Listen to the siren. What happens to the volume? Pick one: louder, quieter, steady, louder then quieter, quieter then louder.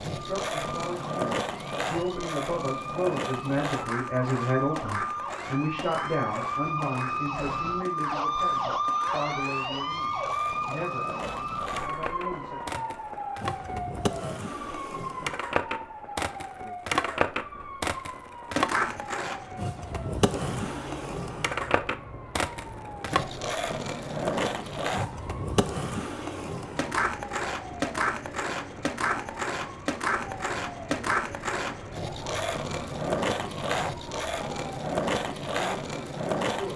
quieter.